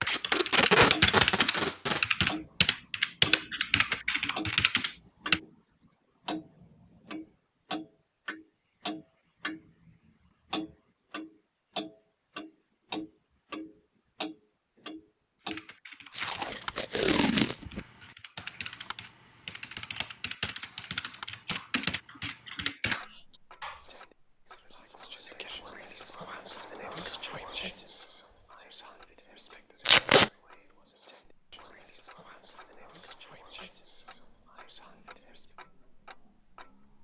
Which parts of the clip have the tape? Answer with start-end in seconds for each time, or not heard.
0.1-2.0, 16.1-17.8, 29.9-30.3.